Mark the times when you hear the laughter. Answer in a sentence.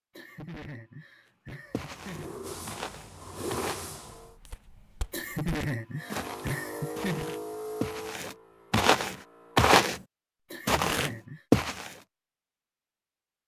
You can hear the laughter from 0.1 to 2.4 s, from 5.1 to 7.3 s and from 10.4 to 11.4 s.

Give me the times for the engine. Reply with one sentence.
You can hear the engine from 1.6 to 4.3 s and from 6.0 to 9.8 s.